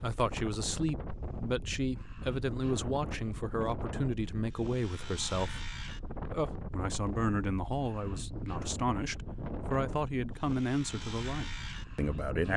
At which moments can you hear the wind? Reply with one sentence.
You can hear the wind from 0.0 to 12.5 s.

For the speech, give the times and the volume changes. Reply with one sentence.
The speech can be heard from 0.0 to 12.5 s, at a steady volume.